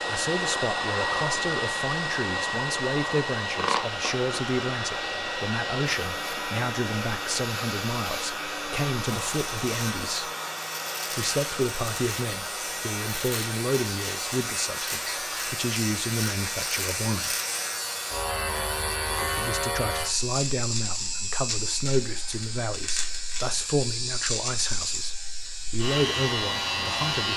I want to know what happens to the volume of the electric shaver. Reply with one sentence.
The volume of the electric shaver goes up.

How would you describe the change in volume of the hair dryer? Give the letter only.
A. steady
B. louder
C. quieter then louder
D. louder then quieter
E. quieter
E.